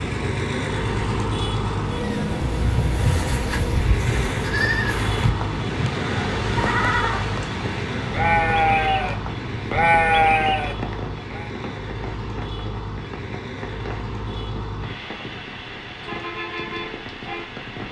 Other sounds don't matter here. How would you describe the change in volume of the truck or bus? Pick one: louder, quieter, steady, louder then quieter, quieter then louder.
quieter.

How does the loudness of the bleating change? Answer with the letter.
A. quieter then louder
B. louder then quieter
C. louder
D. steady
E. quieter
C.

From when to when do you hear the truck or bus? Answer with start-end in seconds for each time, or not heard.
0.0-17.8.